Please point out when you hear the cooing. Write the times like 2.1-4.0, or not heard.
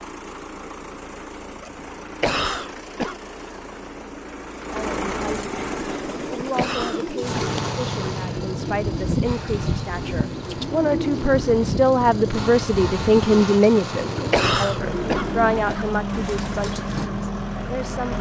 5.9-17.1.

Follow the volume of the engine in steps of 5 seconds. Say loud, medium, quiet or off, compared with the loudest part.
medium, loud, loud, loud.